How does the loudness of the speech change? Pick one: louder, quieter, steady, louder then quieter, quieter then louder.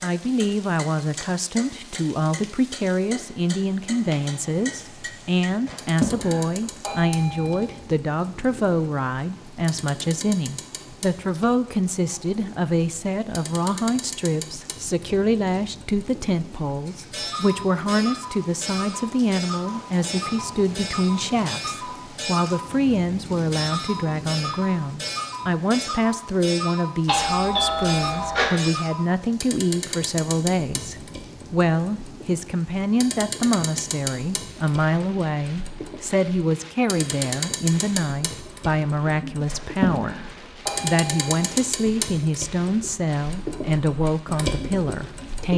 steady.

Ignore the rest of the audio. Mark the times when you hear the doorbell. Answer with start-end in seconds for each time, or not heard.
5.7-7.7, 27.1-28.5, 39.5-41.5.